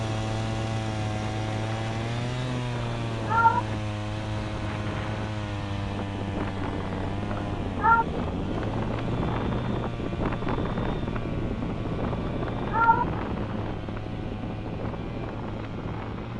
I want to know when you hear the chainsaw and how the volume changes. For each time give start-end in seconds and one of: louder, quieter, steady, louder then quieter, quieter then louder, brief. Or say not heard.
0.0-16.3 quieter.